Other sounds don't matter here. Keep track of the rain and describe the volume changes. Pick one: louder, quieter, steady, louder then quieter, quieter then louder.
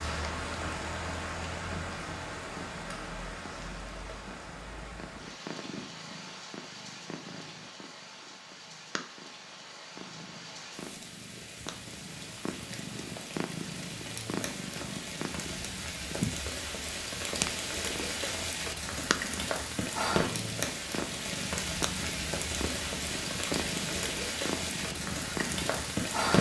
quieter then louder.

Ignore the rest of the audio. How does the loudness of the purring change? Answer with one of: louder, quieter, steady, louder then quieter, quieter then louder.
louder.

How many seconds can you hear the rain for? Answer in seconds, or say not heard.
26 s.